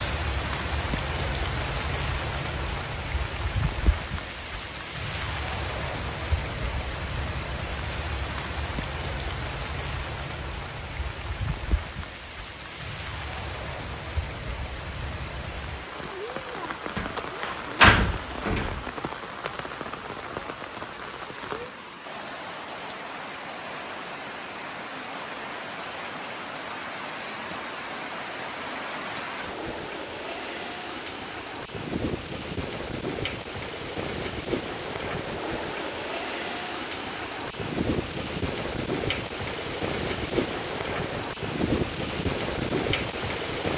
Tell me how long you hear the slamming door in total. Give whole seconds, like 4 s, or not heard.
2 s.